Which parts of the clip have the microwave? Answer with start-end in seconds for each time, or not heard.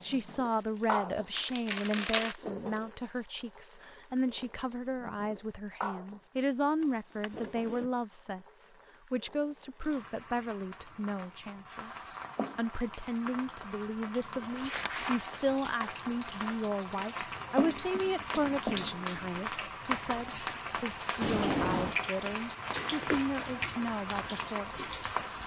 not heard.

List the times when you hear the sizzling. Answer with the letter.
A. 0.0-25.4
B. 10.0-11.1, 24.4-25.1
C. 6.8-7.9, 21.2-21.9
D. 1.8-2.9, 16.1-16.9
A.